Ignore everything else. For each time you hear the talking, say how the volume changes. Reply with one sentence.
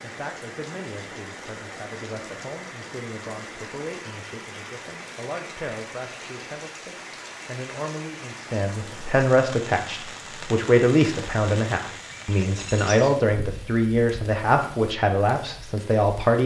The talking can be heard from 0.0 to 16.4 s, getting louder.